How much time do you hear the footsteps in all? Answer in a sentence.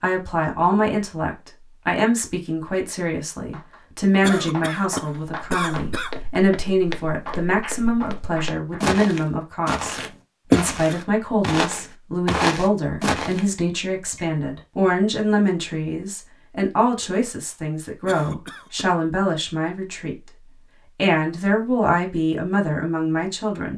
You can hear the footsteps for 8 seconds altogether.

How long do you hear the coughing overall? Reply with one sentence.
The coughing can be heard for 3 seconds in total.